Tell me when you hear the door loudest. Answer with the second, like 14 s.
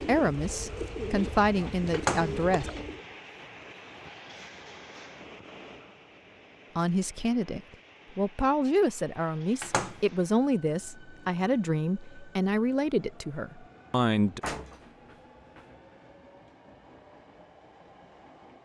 2 s.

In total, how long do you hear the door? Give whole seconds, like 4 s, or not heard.
2 s.